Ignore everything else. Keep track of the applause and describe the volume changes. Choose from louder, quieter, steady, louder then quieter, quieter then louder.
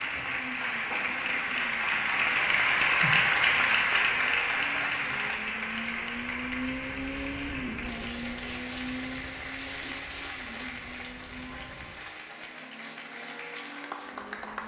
quieter.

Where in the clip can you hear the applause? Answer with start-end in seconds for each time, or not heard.
0.0-14.6.